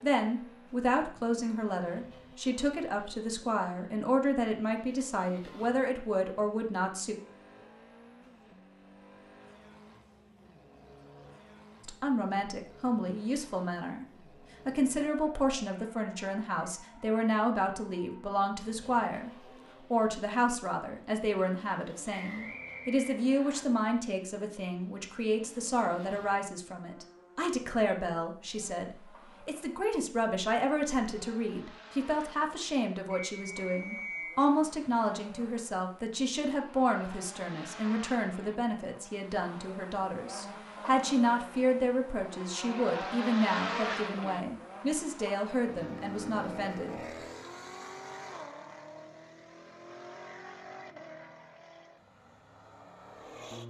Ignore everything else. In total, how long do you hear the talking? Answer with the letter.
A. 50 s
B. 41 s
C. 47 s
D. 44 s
B.